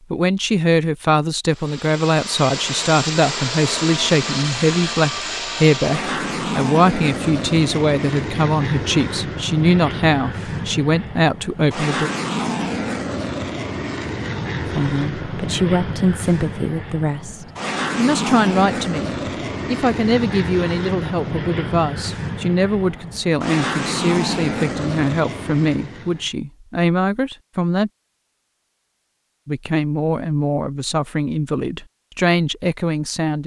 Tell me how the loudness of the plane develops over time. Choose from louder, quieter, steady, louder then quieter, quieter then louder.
steady.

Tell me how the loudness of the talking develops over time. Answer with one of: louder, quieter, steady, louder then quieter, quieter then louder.
steady.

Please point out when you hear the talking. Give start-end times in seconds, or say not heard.
0.1-12.1, 14.7-27.9, 29.4-33.4.